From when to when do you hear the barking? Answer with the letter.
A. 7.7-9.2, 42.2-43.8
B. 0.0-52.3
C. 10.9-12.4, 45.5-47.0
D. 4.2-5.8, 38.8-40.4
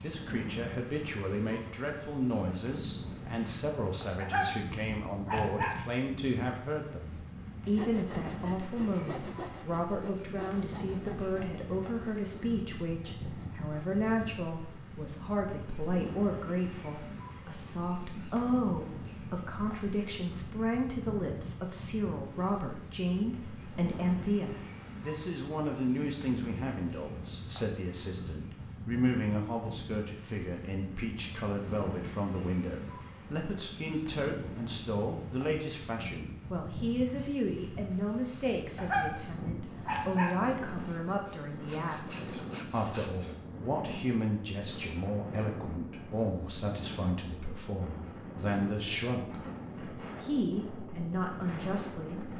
D.